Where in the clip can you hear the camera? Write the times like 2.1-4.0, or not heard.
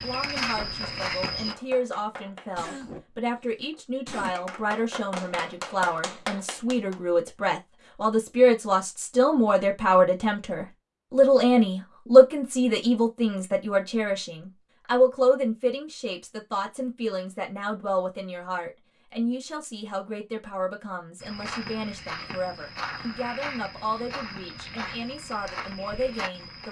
not heard.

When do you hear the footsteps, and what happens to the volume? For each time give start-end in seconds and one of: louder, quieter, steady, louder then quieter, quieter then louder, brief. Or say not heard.
0.0-1.6 brief
21.2-26.6 steady.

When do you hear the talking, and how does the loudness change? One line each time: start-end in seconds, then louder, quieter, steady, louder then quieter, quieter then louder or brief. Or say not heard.
0.0-26.6 louder then quieter.